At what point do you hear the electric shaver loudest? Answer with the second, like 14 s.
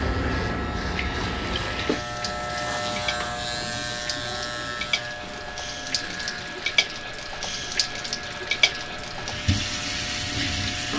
3 s.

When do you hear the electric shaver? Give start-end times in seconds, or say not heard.
0.0-10.9.